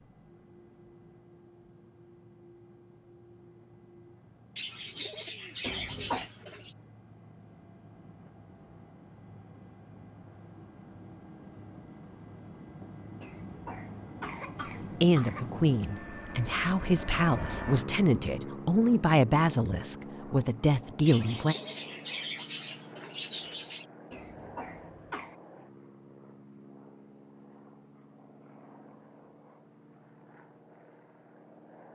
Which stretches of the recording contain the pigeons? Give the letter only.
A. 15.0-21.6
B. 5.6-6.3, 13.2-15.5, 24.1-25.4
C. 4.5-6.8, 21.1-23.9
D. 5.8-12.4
C.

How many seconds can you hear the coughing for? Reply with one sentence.
You can hear the coughing for 4 seconds altogether.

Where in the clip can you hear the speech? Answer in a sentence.
The speech can be heard from 15.0 to 21.6 s.